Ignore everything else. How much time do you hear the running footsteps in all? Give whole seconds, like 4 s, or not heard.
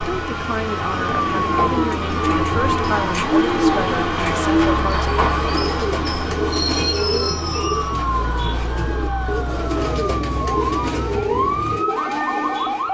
not heard.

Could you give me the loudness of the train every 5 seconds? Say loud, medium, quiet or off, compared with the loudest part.
loud, loud, medium.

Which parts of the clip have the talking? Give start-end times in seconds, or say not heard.
0.0-5.3.